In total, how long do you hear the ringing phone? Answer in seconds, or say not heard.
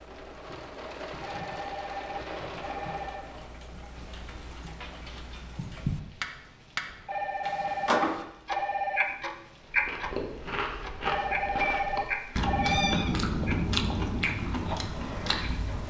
6 s.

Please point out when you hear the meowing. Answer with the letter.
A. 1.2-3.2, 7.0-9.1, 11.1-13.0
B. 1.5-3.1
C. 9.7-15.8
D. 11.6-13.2
D.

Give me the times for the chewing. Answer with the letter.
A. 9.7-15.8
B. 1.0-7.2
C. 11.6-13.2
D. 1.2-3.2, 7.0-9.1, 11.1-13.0
A.